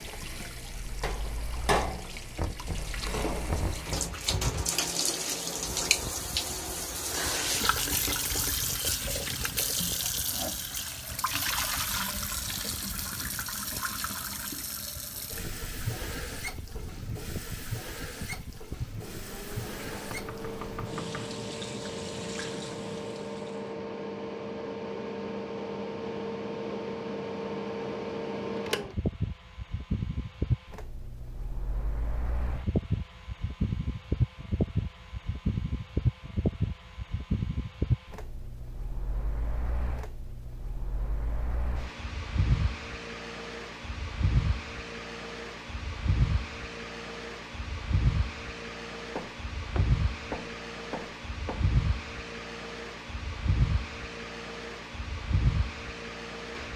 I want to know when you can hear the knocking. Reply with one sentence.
The knocking can be heard from 2.4 to 4.2 s, from 19.8 to 21.4 s and from 49.1 to 51.7 s.